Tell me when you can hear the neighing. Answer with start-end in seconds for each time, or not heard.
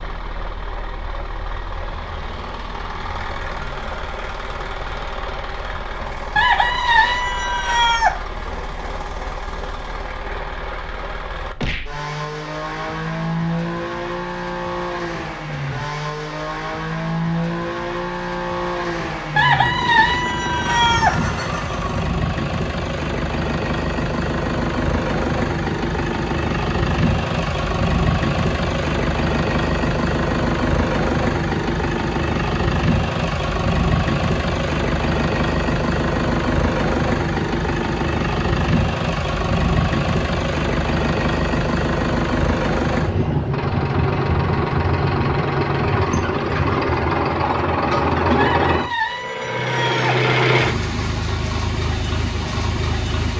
20.7-22.1.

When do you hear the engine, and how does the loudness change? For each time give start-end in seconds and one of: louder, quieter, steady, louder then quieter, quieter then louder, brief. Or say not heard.
0.0-53.3 louder.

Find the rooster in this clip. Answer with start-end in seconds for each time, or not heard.
6.3-8.2, 19.4-21.2, 48.4-50.2.